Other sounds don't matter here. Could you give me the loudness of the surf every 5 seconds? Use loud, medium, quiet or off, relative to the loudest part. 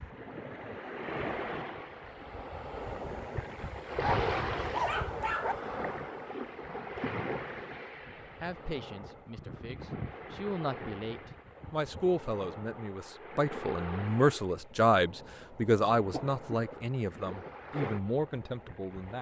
loud, loud, medium, medium.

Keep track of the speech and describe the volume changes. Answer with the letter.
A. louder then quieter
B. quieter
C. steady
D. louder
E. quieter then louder
A.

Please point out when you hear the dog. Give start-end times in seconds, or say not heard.
4.0-5.5.